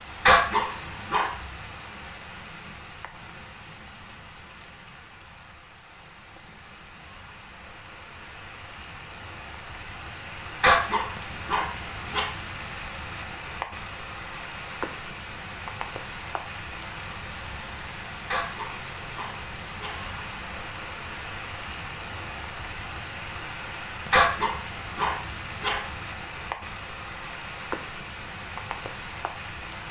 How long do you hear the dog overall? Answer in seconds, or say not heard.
6 s.